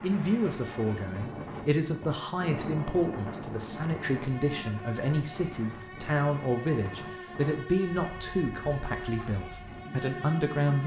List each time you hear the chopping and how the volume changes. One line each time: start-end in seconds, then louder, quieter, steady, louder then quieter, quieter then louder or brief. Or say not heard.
not heard.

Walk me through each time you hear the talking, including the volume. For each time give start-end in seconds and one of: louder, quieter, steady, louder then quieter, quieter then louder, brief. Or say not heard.
0.0-10.8 steady.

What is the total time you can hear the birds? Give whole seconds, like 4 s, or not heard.
not heard.